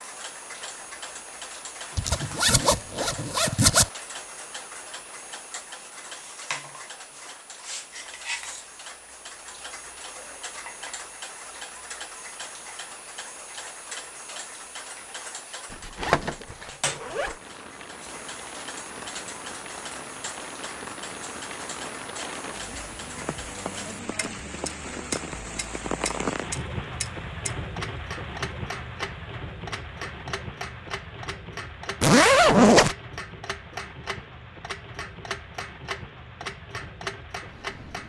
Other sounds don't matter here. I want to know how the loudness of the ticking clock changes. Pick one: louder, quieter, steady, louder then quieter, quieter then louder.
steady.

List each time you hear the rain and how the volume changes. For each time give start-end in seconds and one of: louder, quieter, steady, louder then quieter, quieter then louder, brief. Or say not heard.
17.2-38.0 louder then quieter.